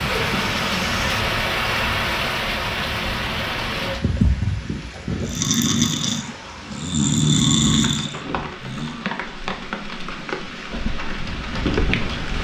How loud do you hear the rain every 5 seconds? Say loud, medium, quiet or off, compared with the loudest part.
loud, medium, loud.